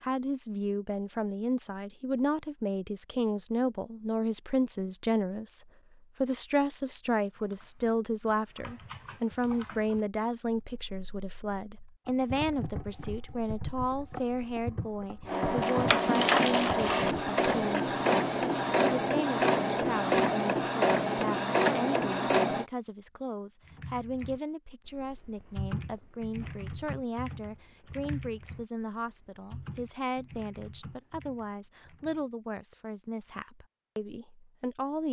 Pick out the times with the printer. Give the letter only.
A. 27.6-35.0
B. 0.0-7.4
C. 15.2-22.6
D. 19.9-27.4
C.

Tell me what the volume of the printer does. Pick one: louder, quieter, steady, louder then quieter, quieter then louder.
steady.